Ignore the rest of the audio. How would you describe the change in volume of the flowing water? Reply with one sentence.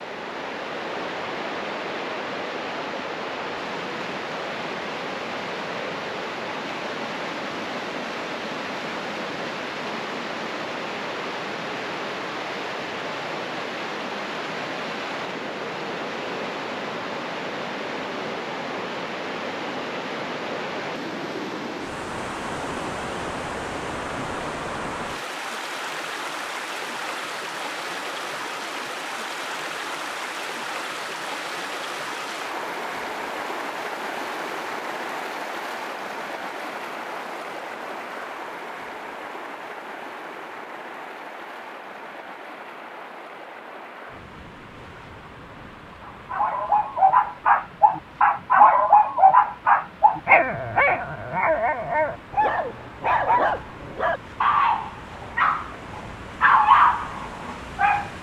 The volume of the flowing water goes down.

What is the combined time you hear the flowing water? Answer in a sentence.
You can hear the flowing water for 58 seconds altogether.